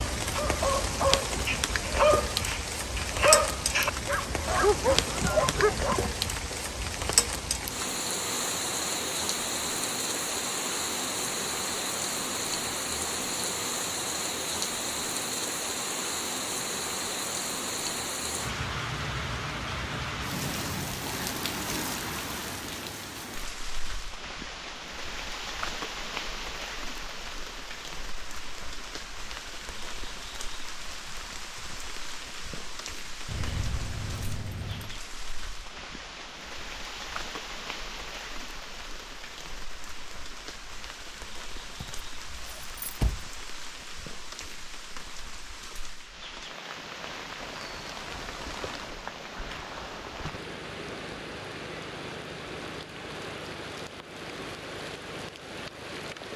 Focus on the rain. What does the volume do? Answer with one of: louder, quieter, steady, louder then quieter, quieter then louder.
quieter.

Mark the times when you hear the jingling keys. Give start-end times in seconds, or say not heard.
4.9-6.2, 33.2-35.0, 41.8-43.2.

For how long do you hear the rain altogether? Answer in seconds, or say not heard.
56 s.